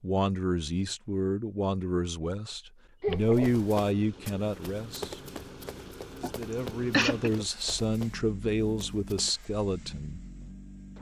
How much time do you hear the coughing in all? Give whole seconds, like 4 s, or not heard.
2 s.